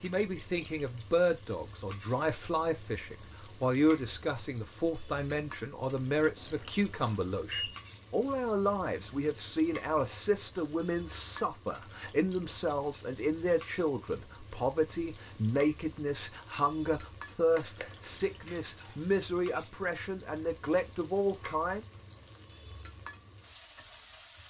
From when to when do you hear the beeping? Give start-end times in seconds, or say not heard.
6.3-7.8.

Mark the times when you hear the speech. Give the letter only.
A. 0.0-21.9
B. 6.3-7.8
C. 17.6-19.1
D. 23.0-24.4
A.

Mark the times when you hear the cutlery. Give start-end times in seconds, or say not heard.
17.6-19.1.